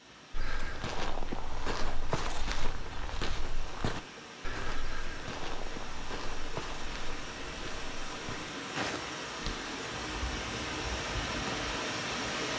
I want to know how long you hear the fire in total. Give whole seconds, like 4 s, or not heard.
not heard.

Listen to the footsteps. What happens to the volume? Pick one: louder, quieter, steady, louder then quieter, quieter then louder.
quieter.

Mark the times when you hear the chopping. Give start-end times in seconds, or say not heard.
not heard.